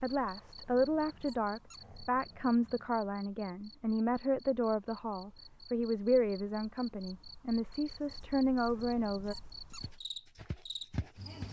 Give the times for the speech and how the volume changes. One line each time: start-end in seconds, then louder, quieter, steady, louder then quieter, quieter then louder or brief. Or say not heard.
0.0-9.3 steady.